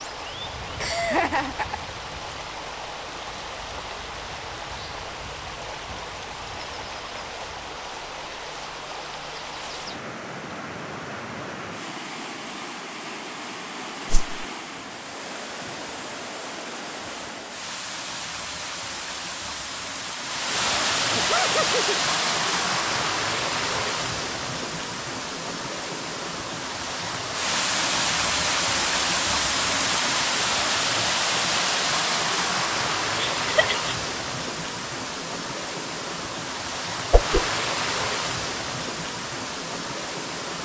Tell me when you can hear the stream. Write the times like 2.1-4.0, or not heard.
0.0-40.5.